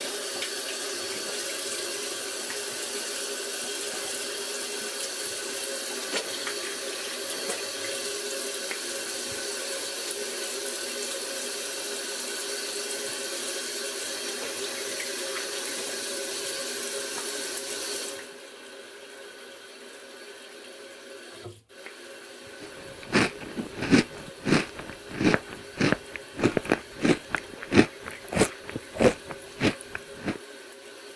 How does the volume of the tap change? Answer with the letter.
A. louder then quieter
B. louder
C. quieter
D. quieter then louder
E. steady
C.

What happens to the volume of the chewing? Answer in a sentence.
The loudness of the chewing stays about the same.